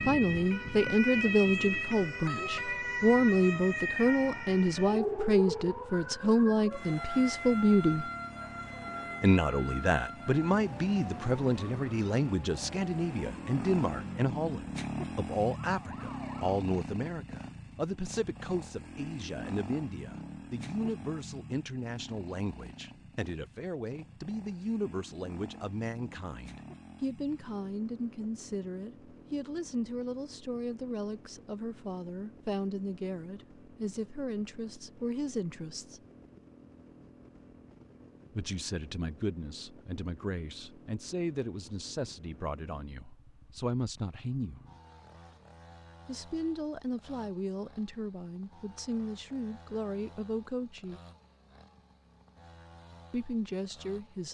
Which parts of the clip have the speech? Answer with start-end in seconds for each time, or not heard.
0.1-8.1, 9.2-36.0, 38.3-44.6, 46.0-51.0, 53.1-54.2.